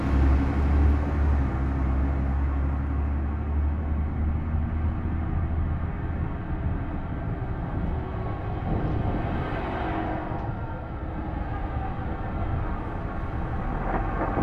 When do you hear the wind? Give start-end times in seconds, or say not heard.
3.8-14.3.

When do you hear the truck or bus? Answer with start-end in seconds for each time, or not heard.
0.0-14.3.